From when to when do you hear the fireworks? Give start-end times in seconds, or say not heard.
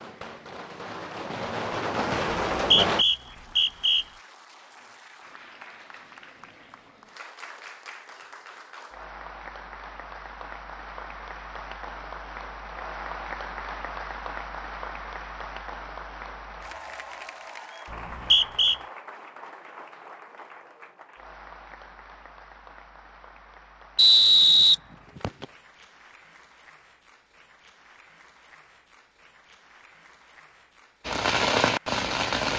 0.0-3.0, 31.1-32.5.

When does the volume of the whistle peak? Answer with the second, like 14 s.
24 s.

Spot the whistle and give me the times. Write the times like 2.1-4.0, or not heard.
2.5-4.0, 17.9-18.8, 23.9-25.4.